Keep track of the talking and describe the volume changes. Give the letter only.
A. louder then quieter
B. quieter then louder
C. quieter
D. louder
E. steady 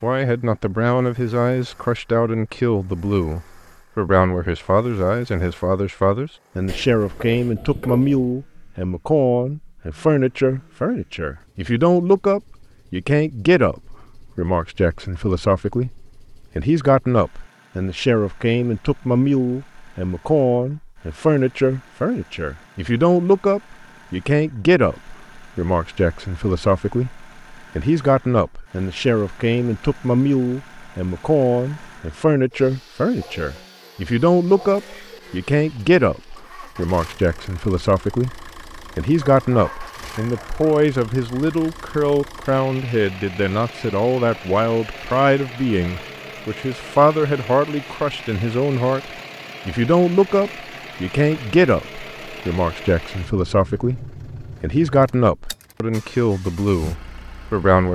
E.